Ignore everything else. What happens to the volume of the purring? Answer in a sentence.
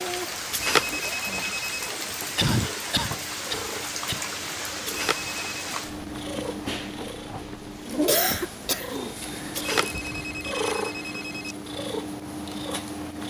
The loudness of the purring goes up.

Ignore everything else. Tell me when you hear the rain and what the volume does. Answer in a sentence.
The rain can be heard from 0.0 to 11.4 s, getting quieter.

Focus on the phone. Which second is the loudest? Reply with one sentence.
The loudest moment of the phone is at 1 second.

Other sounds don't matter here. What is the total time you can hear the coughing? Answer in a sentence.
The coughing can be heard for 3 seconds in total.